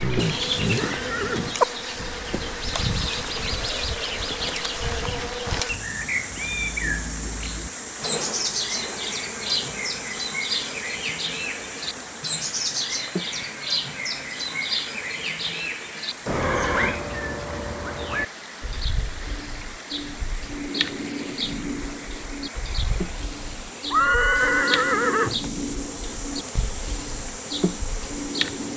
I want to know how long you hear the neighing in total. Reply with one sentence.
You can hear the neighing for 4 seconds altogether.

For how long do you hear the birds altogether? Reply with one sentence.
You can hear the birds for 29 seconds altogether.